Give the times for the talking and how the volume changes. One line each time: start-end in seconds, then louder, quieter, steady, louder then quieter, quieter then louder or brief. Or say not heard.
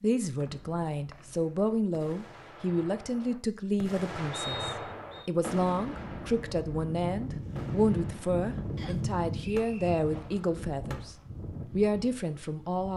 0.0-12.9 steady.